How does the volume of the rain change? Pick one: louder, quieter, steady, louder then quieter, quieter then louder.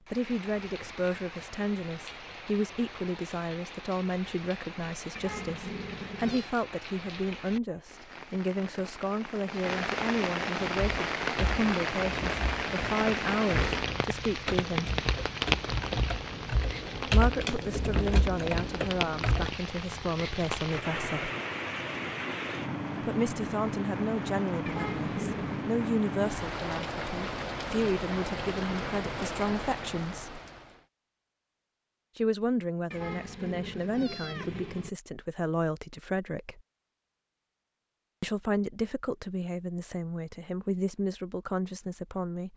louder.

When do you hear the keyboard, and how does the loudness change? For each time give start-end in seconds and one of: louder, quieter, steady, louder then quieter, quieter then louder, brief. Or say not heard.
10.7-19.5 louder.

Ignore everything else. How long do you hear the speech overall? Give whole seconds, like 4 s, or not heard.
35 s.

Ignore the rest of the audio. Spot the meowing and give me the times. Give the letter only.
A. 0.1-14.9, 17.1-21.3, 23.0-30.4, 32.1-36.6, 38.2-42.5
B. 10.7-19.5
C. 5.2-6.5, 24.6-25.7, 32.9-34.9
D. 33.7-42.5
C.